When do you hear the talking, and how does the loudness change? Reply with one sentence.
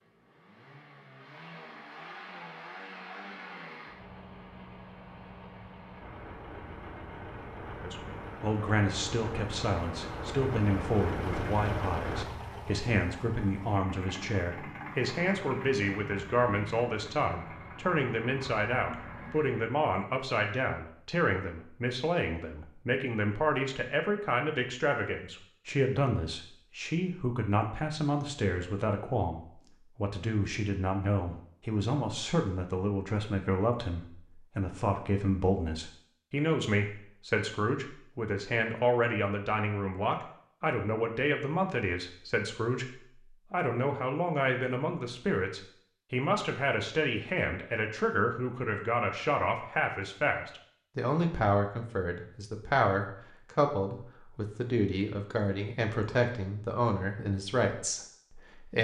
You can hear the talking from 7.8 to 58.7 s, at a steady volume.